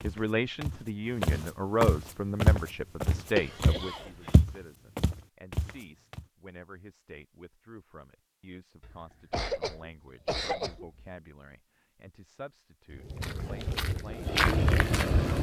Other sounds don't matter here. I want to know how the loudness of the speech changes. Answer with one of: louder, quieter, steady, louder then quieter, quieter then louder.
quieter.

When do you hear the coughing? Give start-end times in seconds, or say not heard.
3.4-4.4, 8.8-11.1.